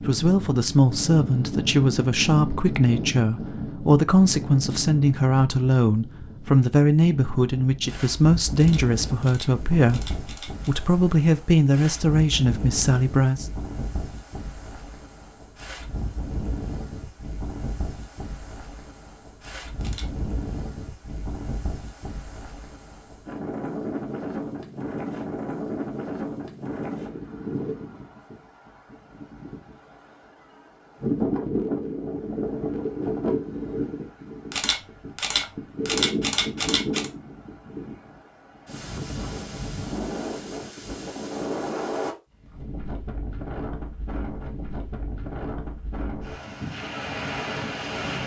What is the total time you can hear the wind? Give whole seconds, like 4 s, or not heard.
48 s.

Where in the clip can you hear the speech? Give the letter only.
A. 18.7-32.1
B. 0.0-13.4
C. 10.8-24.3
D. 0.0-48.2
B.